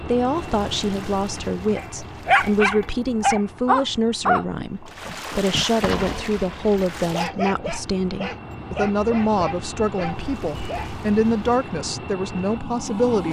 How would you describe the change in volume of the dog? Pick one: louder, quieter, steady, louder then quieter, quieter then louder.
quieter.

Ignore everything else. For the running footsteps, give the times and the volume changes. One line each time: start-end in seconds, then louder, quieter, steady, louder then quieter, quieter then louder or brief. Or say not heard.
not heard.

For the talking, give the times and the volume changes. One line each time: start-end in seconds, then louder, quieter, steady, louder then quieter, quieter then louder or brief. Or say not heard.
0.1-13.2 steady.